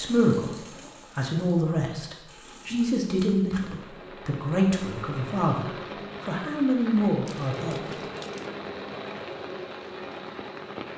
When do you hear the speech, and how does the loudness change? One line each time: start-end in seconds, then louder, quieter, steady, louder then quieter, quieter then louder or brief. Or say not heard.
0.0-7.9 steady.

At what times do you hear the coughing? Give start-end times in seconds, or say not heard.
not heard.